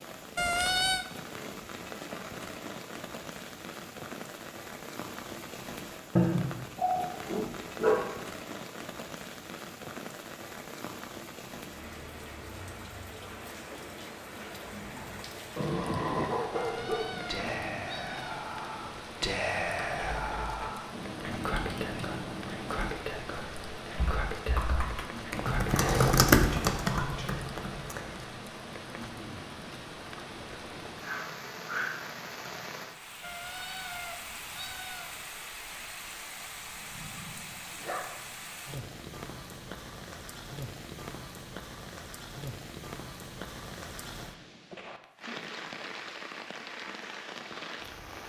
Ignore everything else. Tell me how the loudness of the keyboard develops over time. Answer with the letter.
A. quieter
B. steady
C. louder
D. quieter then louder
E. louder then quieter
E.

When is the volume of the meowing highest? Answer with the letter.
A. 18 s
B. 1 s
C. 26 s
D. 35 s
B.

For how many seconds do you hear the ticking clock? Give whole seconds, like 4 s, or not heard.
not heard.